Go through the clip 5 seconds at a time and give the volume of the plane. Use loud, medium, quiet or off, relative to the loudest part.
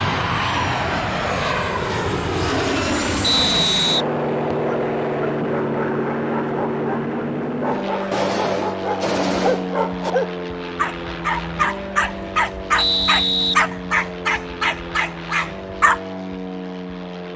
loud, loud, medium, medium.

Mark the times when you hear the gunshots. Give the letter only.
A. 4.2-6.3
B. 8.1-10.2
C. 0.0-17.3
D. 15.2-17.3
B.